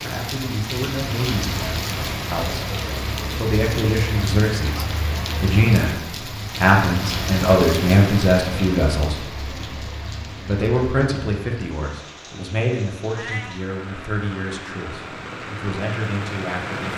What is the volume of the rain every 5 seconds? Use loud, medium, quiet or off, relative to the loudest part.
loud, loud, medium, loud.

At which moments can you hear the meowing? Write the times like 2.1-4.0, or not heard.
13.1-13.6.